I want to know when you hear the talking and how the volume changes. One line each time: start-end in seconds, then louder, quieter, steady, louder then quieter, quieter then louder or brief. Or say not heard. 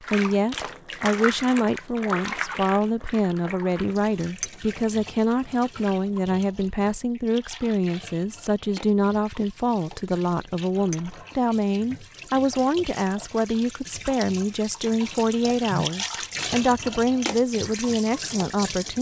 0.0-18.9 steady.